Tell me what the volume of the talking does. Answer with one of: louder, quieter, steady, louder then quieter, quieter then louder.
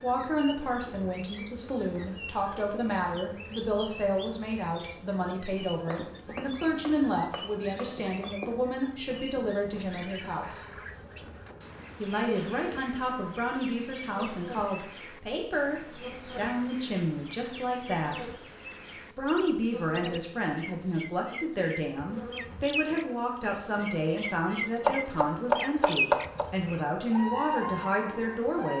steady.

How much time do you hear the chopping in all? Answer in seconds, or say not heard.
4 s.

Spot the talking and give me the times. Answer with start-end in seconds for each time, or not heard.
0.0-10.7, 11.9-18.2, 19.1-28.7.